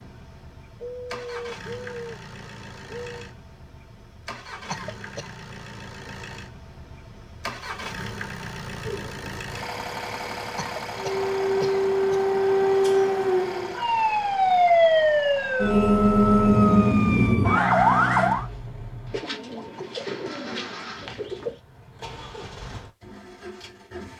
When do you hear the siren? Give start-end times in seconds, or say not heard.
10.9-18.4.